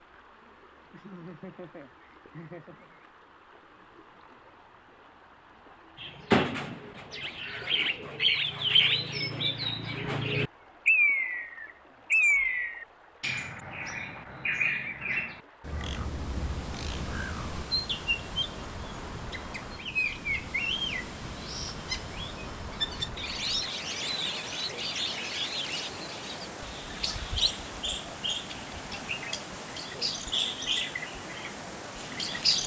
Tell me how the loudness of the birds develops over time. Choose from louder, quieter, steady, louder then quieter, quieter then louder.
quieter.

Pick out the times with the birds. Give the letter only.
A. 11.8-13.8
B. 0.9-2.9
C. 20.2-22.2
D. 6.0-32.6
D.